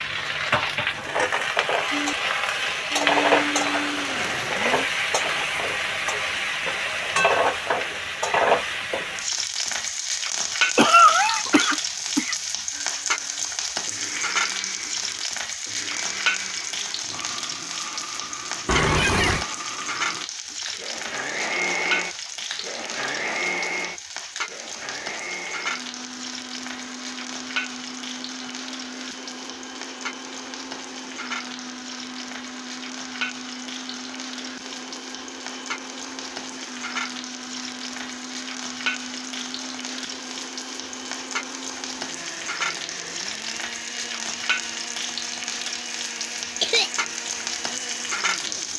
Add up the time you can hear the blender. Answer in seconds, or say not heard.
39 s.